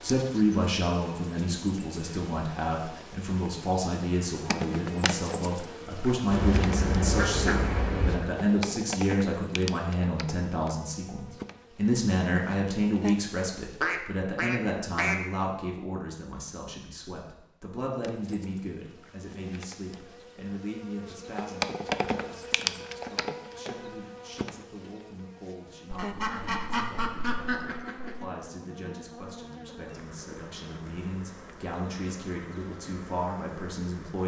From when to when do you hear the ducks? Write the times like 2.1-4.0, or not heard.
6.3-8.2, 13.8-15.2, 25.9-28.1.